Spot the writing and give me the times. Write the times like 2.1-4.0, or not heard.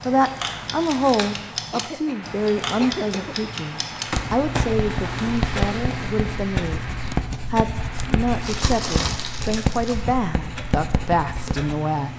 4.0-11.8.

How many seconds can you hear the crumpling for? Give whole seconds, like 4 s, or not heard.
4 s.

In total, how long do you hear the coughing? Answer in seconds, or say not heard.
2 s.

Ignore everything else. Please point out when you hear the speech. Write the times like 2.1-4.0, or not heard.
0.1-12.1.